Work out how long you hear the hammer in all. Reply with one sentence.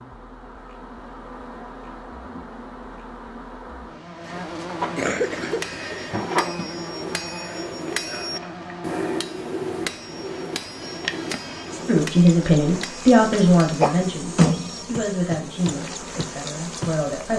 The hammer can be heard for 12 seconds in total.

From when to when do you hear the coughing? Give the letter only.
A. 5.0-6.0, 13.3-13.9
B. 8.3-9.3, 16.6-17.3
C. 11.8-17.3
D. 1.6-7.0
A.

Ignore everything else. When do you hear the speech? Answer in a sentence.
You can hear the speech from 11.8 to 17.3 s.